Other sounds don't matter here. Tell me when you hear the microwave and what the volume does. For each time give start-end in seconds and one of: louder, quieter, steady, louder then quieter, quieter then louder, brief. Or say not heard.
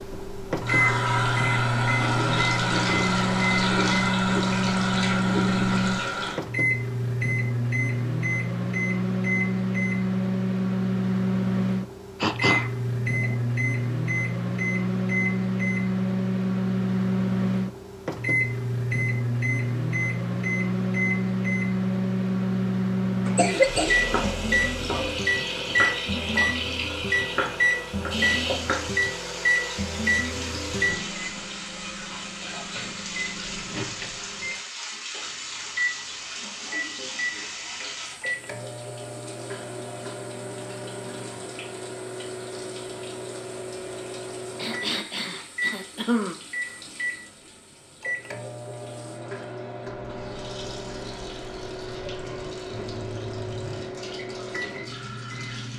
0.0-55.7 quieter.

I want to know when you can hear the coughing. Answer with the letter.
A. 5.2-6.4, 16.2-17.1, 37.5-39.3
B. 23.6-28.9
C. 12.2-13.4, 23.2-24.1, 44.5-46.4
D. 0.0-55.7
C.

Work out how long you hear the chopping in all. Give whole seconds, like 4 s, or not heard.
5 s.